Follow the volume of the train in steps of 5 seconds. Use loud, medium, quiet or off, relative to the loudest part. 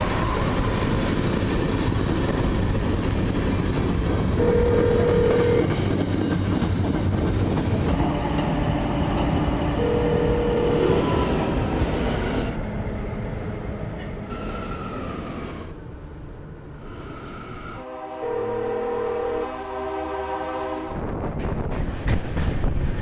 loud, loud, loud, medium, medium.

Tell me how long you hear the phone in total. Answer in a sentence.
The phone can be heard for 4 seconds in total.